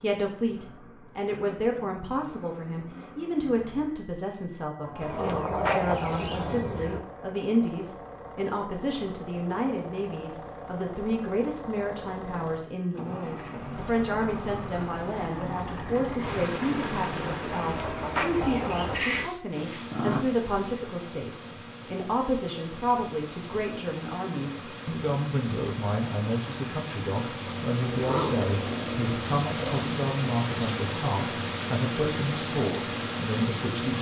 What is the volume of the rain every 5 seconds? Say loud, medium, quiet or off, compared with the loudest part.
off, off, off, medium, medium, loud, loud.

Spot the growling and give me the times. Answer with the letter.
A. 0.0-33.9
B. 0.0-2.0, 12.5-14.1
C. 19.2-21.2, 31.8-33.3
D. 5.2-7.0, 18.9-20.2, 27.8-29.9
D.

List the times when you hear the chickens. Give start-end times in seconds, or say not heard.
5.0-7.0, 17.5-19.1.